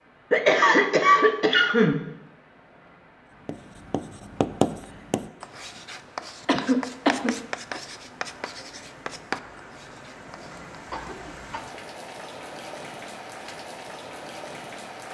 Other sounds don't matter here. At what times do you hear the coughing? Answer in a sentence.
The coughing can be heard from 0.3 to 2.0 s, from 6.5 to 7.8 s and from 10.8 to 11.6 s.